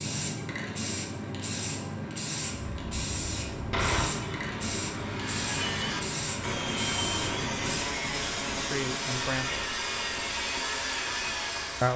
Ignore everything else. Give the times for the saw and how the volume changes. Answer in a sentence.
The saw can be heard from 5.0 to 11.9 s, at a steady volume.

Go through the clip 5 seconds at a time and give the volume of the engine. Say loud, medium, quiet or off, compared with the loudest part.
loud, medium, medium.